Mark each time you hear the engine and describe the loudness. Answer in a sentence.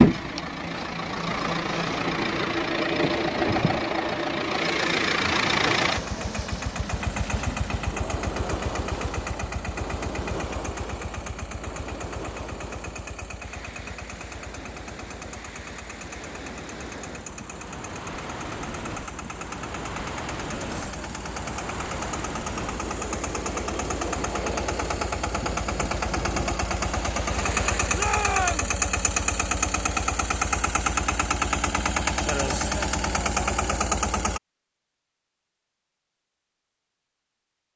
You can hear the engine from 0.0 to 34.4 s, getting quieter then louder.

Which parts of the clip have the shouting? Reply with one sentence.
You can hear the shouting from 27.9 to 28.8 s.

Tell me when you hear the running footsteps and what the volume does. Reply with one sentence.
You can't hear the running footsteps here.